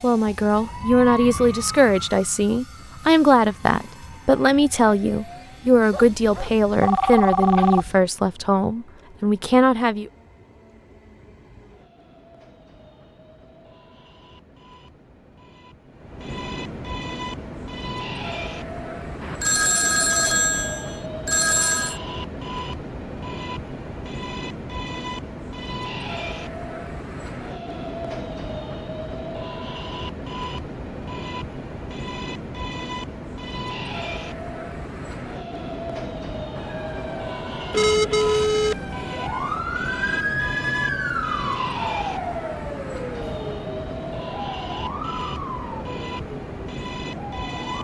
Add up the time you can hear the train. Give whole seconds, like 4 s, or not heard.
48 s.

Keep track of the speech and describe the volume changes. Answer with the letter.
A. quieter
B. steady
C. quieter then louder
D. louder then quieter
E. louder
B.